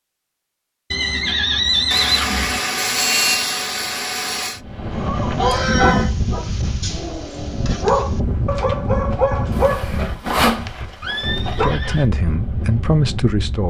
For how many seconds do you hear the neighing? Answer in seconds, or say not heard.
5 s.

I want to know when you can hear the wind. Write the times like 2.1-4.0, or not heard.
4.5-13.6.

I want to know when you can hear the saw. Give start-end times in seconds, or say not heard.
1.9-4.6, 9.5-10.7.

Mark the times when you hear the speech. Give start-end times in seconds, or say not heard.
11.6-13.6.